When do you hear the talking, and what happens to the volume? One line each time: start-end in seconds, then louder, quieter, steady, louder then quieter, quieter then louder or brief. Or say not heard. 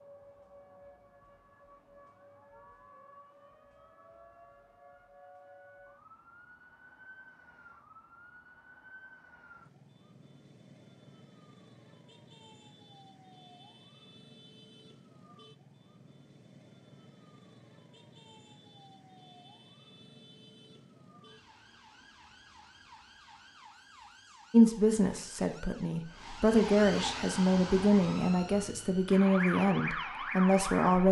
24.5-31.0 louder.